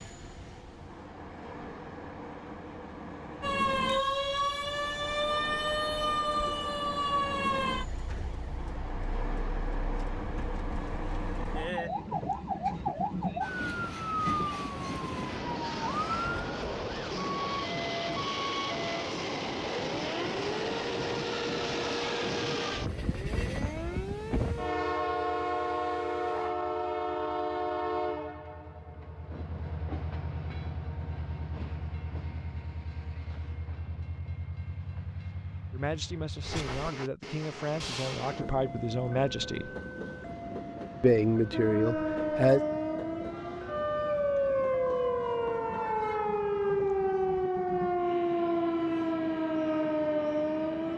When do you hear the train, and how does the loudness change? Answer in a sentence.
You can hear the train from 0.0 to 50.9 s, getting louder then quieter.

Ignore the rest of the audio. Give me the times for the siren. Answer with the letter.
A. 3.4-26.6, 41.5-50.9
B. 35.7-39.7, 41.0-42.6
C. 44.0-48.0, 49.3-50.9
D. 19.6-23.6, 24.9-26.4
A.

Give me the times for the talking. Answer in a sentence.
The talking can be heard from 35.7 to 39.7 s and from 41.0 to 42.6 s.